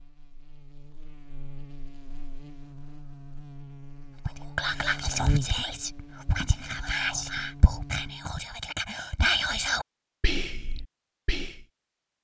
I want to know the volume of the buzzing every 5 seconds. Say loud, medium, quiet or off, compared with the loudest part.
medium, loud, off.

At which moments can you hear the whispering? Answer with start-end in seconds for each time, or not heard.
4.2-11.7.